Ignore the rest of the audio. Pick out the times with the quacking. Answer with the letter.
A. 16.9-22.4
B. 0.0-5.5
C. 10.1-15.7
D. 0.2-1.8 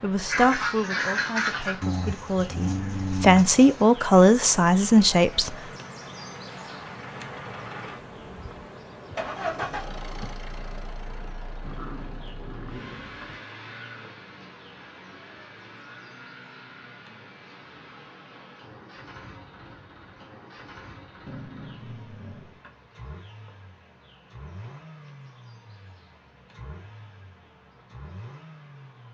D.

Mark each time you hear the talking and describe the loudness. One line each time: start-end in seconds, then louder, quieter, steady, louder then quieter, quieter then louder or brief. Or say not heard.
0.0-5.5 quieter then louder.